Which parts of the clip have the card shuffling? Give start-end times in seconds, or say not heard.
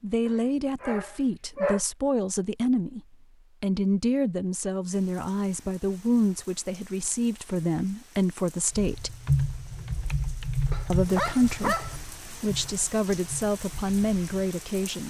not heard.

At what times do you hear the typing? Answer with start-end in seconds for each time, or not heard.
8.8-14.2.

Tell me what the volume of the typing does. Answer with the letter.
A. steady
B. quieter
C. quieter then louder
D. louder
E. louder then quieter
B.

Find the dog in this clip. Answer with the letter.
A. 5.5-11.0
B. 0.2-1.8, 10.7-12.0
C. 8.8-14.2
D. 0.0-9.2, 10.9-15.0
B.